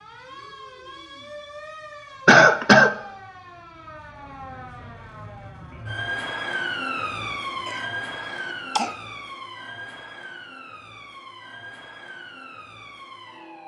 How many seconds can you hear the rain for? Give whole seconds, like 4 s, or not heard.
not heard.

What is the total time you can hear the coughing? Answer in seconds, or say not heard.
2 s.